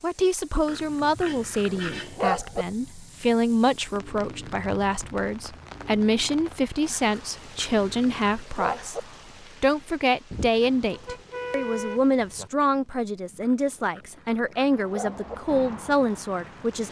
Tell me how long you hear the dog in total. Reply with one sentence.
You can hear the dog for 6 seconds altogether.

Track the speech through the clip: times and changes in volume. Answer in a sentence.
The speech can be heard from 0.0 to 16.8 s, at a steady volume.